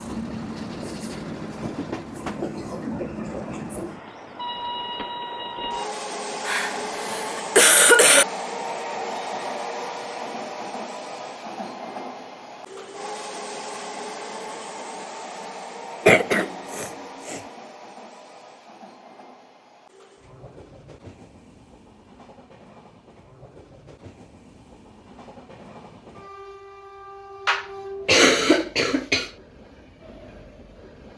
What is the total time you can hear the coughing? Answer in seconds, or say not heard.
5 s.